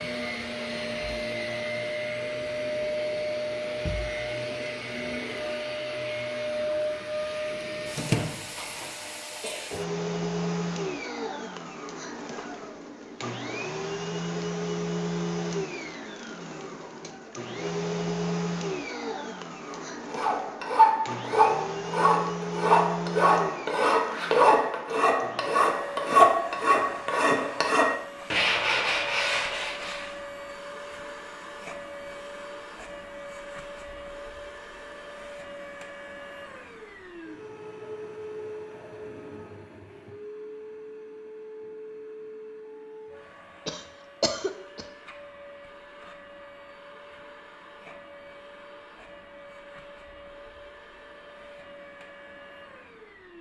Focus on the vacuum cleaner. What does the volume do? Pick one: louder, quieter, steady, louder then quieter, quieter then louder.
quieter.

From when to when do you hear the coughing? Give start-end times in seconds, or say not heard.
43.6-44.9.